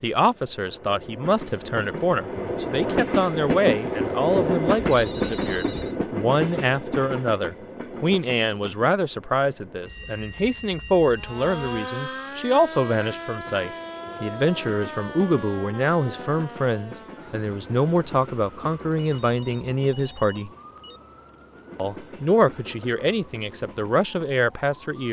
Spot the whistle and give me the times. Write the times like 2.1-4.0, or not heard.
not heard.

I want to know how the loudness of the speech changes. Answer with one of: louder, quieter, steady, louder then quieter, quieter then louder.
steady.